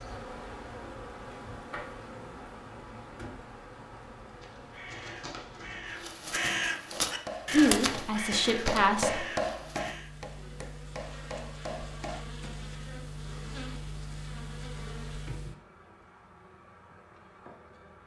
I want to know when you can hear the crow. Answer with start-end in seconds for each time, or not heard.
4.2-10.1.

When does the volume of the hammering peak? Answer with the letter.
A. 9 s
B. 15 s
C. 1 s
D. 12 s
A.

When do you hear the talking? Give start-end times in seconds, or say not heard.
7.5-9.2.